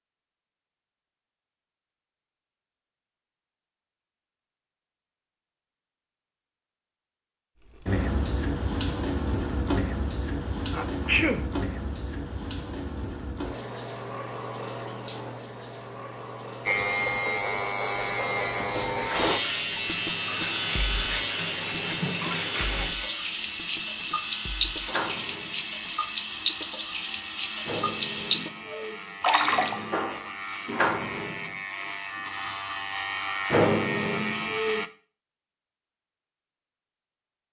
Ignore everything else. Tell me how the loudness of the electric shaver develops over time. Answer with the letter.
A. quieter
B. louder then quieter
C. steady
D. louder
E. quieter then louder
E.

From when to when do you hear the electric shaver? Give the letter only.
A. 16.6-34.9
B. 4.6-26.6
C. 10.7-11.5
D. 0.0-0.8
A.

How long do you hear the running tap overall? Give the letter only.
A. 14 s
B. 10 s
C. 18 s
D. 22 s
D.